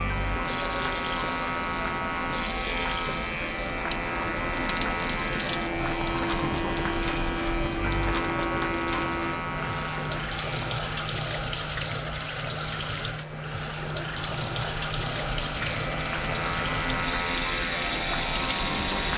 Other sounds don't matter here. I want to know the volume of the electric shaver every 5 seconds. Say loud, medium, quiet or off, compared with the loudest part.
loud, loud, medium, loud.